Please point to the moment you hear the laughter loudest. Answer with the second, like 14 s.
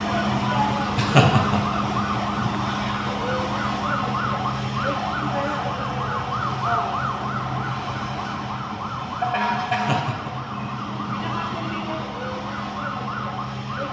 1 s.